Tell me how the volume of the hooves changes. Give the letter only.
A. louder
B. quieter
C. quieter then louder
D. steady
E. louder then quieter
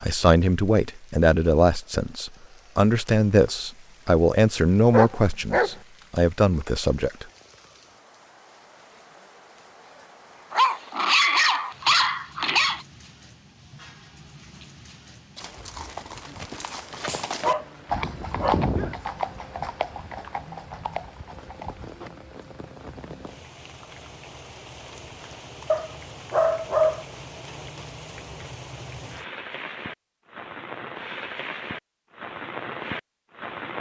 E.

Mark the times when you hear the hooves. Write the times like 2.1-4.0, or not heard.
15.3-22.1.